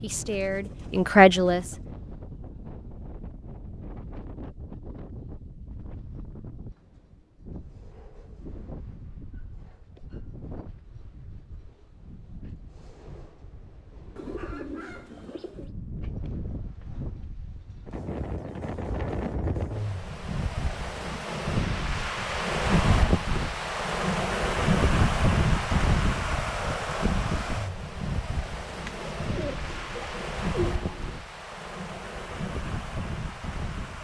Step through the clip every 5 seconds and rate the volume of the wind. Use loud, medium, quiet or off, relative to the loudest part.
quiet, quiet, quiet, medium, loud, loud, medium.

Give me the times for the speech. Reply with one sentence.
The speech can be heard from 0.0 to 1.8 s.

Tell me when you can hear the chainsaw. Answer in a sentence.
The chainsaw can't be heard in this clip.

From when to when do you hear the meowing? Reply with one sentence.
You can't hear the meowing here.